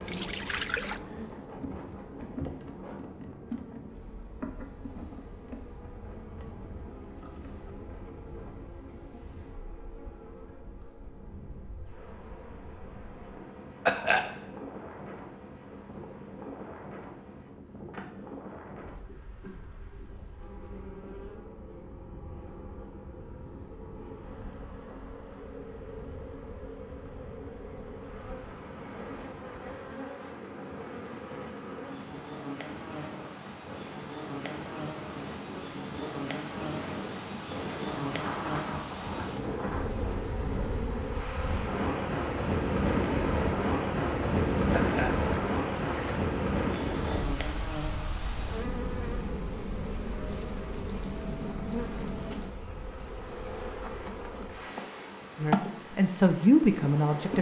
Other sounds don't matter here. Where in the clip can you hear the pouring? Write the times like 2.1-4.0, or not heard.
0.1-1.0, 44.5-46.2.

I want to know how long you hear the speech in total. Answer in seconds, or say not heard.
2 s.